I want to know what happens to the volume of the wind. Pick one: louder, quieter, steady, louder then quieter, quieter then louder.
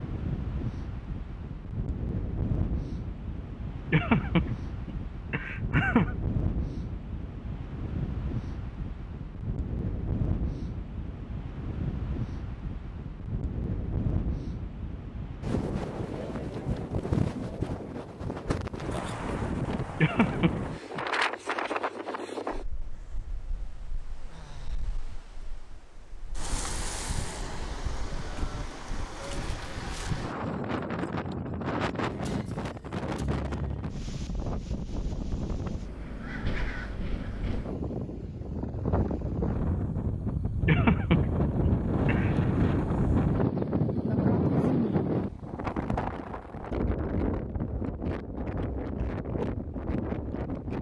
louder.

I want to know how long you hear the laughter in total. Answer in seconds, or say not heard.
5 s.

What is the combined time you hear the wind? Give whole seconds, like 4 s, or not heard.
51 s.